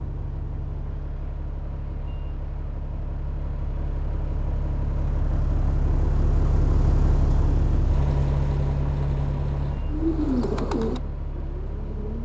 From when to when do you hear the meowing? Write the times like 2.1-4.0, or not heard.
not heard.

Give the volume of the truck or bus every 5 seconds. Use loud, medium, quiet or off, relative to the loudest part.
medium, loud, medium.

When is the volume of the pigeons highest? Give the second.
10 s.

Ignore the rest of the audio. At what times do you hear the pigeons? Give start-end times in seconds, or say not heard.
9.9-12.2.